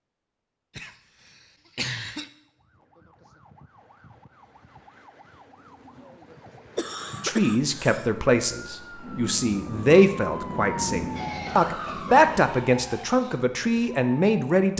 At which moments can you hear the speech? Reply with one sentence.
The speech can be heard from 7.2 to 14.7 s.